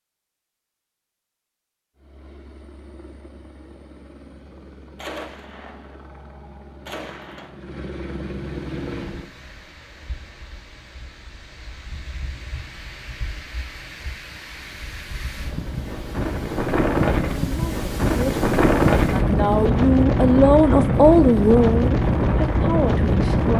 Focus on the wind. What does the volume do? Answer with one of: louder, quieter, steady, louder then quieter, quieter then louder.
louder.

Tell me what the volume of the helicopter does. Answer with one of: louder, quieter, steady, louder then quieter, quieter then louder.
louder.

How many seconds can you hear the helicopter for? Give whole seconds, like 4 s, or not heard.
7 s.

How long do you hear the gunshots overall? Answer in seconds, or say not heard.
3 s.